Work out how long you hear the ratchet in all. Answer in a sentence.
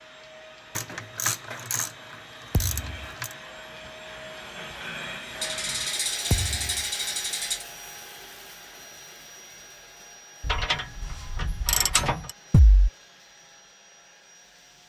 You can hear the ratchet for 7 seconds altogether.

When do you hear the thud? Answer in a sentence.
The thud can be heard from 2.5 to 3.0 s, from 6.3 to 6.8 s and from 12.5 to 12.9 s.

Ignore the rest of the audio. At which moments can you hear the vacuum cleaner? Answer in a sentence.
The vacuum cleaner can be heard from 0.0 to 14.8 s.